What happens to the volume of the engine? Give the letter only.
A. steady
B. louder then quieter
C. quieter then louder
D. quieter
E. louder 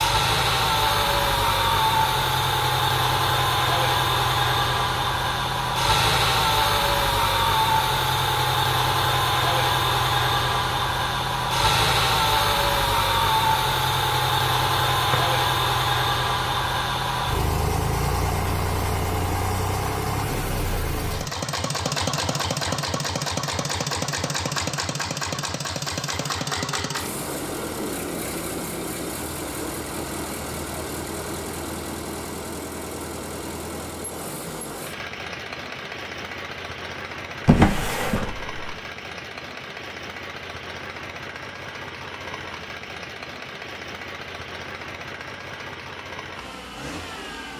D.